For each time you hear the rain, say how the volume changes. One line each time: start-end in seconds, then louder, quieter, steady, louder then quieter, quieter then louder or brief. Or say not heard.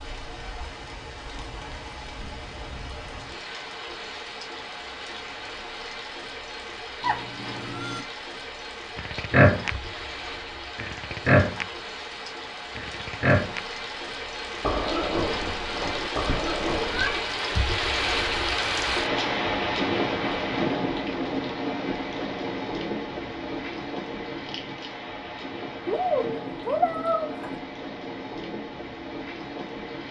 0.0-30.0 louder then quieter.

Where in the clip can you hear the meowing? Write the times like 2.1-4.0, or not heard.
7.0-8.1, 16.2-17.2, 25.9-27.6.